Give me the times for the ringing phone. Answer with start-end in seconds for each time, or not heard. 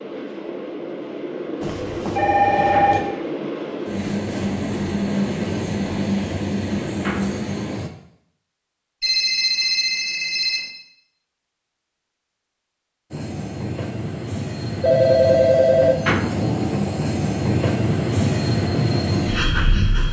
1.6-3.0, 9.0-10.6, 14.8-15.9.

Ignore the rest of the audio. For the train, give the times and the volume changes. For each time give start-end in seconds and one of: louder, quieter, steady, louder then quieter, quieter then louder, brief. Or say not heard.
0.0-7.9 louder
13.1-20.0 louder.